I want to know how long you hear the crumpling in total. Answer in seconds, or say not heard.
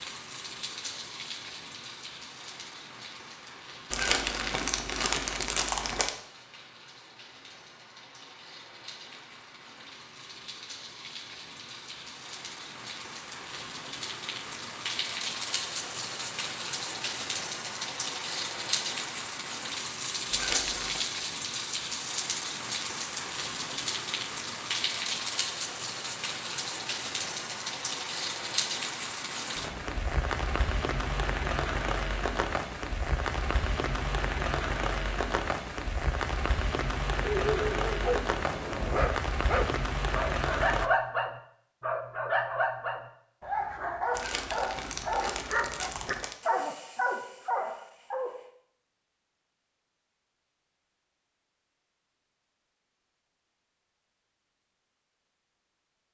5 s.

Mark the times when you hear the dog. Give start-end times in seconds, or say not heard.
37.2-48.5.